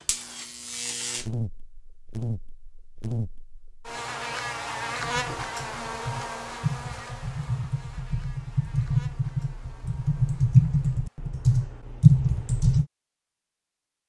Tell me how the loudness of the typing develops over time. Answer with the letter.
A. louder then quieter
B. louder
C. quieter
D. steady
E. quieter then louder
B.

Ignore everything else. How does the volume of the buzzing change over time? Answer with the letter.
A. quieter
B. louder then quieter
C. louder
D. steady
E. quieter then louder
A.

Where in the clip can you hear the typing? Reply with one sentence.
You can hear the typing from 5.0 to 12.8 s.